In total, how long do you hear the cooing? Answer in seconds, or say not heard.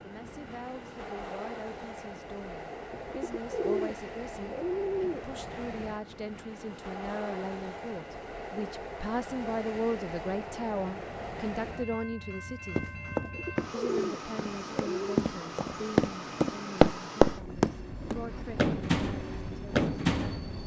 4 s.